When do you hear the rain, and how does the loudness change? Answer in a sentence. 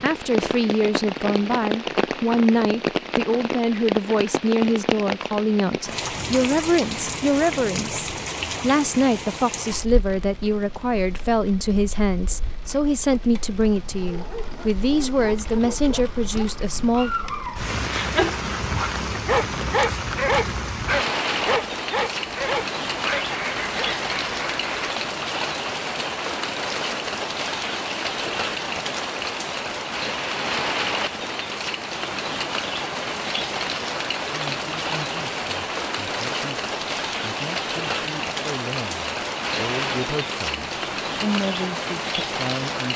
The rain can be heard from 0.0 to 42.9 s, getting quieter then louder.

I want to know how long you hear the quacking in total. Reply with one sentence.
The quacking can be heard for 2 seconds in total.